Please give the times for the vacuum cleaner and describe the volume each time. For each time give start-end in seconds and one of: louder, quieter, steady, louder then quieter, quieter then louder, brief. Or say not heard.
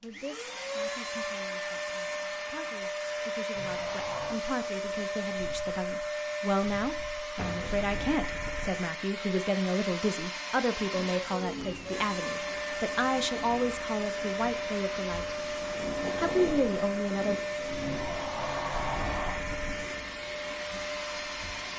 0.0-21.7 steady.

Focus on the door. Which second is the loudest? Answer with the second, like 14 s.
19 s.